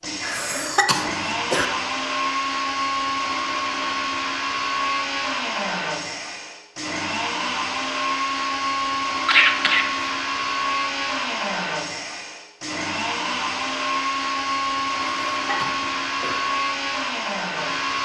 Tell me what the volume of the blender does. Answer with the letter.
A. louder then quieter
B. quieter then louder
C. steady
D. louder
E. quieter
C.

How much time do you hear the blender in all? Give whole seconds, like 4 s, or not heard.
18 s.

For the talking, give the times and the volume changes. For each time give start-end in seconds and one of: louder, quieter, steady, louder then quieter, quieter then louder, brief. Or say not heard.
not heard.